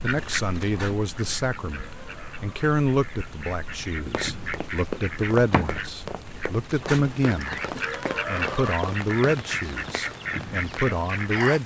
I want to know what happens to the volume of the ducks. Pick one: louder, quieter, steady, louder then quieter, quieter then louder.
louder.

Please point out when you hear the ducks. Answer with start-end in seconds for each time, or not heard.
0.0-11.6.